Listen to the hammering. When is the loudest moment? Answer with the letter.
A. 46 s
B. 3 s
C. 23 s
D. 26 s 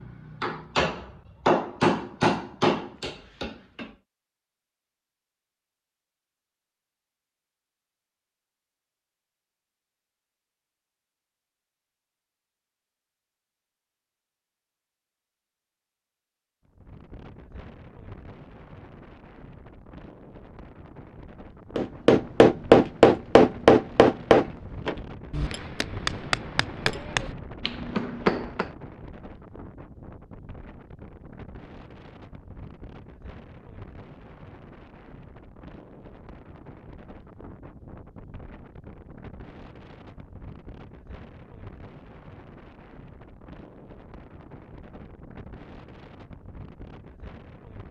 C.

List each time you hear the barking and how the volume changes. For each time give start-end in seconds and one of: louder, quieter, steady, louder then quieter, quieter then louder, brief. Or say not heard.
not heard.